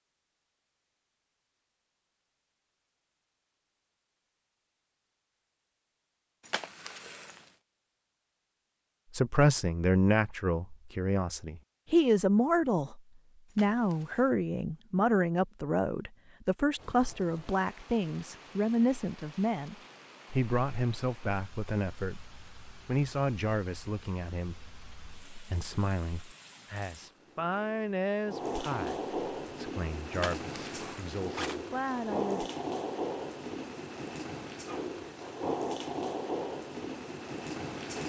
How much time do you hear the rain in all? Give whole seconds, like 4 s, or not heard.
21 s.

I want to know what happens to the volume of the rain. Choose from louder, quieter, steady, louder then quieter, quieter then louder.
louder.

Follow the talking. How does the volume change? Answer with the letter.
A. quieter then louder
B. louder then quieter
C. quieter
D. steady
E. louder
C.